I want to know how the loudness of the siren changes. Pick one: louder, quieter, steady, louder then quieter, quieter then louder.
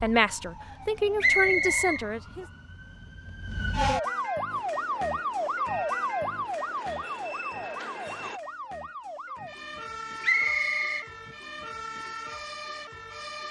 louder then quieter.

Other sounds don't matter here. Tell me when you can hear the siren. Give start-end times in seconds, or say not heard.
0.0-13.4.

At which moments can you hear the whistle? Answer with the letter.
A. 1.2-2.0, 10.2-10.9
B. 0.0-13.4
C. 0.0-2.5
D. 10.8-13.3
A.